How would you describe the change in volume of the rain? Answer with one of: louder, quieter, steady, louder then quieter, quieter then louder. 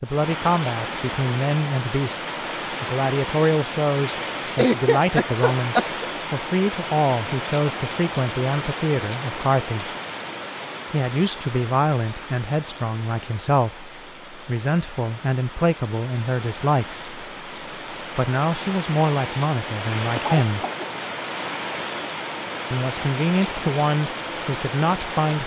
quieter then louder.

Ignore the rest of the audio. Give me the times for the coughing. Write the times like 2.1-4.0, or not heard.
4.5-5.9, 20.1-20.9.